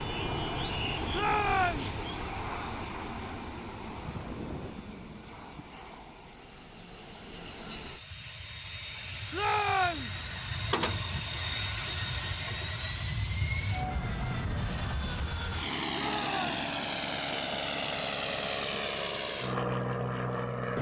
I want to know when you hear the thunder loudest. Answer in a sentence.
The volume of the thunder peaks at 4 seconds.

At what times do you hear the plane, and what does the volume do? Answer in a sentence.
You can hear the plane from 0.0 to 20.7 s, getting quieter then louder.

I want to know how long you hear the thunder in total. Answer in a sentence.
You can hear the thunder for 2 seconds altogether.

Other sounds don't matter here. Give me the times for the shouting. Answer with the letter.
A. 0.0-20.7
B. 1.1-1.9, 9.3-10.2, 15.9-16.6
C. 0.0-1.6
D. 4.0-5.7
B.